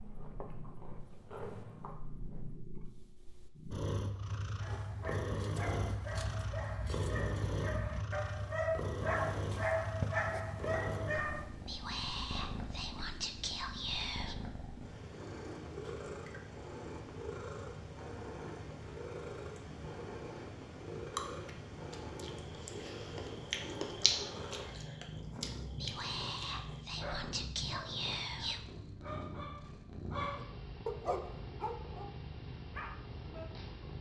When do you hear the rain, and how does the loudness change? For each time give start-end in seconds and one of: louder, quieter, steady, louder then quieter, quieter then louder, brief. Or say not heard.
not heard.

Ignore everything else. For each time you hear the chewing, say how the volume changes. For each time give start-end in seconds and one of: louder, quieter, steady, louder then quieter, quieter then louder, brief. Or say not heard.
0.0-2.5 brief
21.1-26.9 louder then quieter.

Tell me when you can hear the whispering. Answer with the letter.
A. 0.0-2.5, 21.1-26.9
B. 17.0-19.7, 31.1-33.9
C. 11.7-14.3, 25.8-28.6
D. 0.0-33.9
C.